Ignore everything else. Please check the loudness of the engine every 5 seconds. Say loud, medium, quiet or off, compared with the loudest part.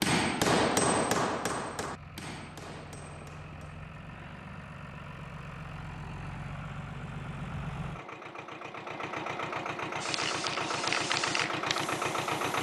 quiet, medium, loud.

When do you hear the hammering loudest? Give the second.
1 s.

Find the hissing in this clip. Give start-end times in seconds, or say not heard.
10.0-12.5.